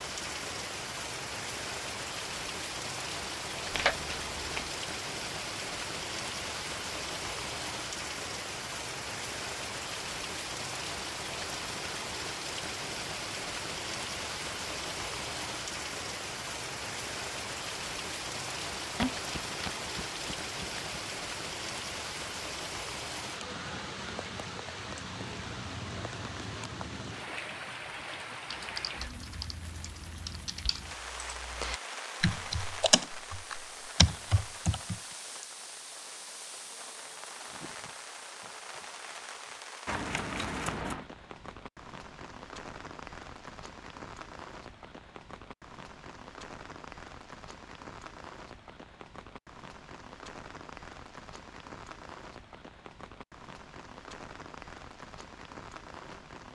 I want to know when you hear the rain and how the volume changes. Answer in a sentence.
You can hear the rain from 0.0 to 56.5 s, getting quieter.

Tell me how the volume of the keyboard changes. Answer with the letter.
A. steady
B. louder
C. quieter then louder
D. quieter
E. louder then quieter
B.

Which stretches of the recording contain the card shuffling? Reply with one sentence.
The card shuffling can be heard from 3.7 to 4.8 s, from 18.9 to 20.9 s and from 39.9 to 41.0 s.